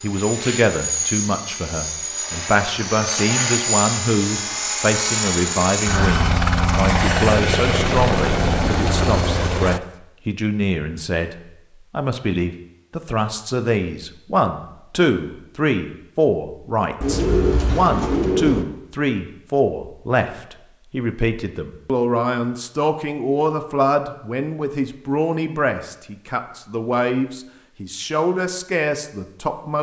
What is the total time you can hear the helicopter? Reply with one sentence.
The helicopter can be heard for 10 seconds in total.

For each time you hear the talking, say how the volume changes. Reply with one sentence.
You can hear the talking from 0.0 to 29.7 s, at a steady volume.